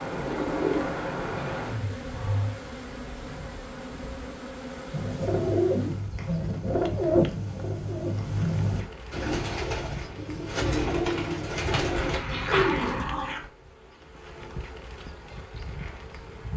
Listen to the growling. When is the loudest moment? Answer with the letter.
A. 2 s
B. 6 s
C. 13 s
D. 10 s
C.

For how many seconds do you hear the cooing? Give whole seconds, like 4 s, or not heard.
10 s.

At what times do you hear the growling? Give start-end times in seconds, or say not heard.
1.4-2.5, 11.8-13.5.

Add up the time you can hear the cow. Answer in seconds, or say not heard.
not heard.